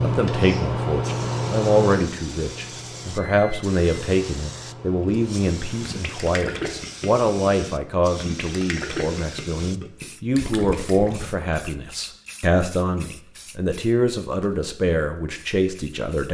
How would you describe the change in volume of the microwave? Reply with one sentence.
The loudness of the microwave goes down.